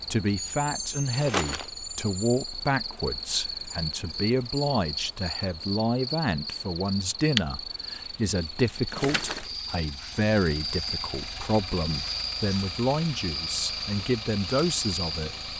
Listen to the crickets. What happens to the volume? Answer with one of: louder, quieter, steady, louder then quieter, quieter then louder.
steady.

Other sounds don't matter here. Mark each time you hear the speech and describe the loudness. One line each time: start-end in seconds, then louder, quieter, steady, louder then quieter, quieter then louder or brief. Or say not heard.
0.1-15.5 steady.